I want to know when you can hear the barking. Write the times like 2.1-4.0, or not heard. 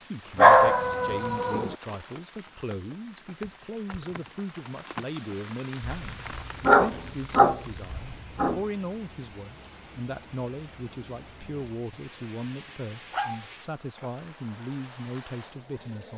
0.3-1.8, 5.8-8.6, 11.9-13.4.